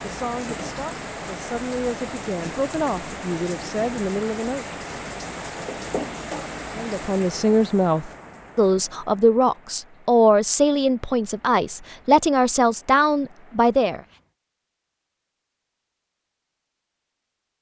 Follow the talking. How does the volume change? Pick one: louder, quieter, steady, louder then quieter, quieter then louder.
louder.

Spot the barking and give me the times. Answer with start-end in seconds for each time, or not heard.
not heard.